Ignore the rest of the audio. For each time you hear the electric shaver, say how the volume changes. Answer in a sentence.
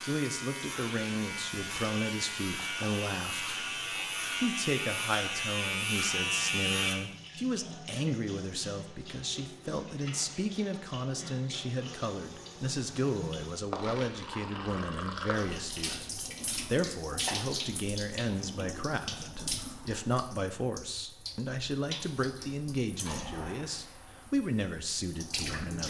The electric shaver can be heard from 0.0 to 7.0 s, getting louder.